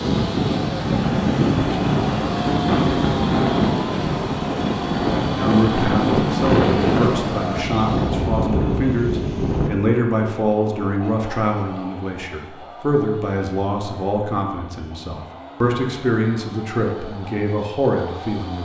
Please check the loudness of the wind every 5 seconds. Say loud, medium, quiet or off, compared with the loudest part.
loud, loud, off, off.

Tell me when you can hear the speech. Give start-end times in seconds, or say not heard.
5.3-18.6.